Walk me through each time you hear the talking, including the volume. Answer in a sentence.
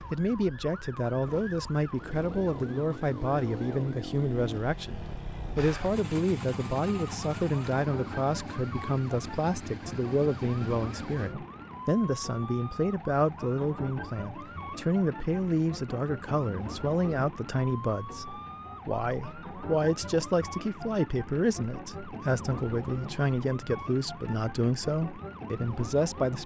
The talking can be heard from 0.0 to 26.4 s, at a steady volume.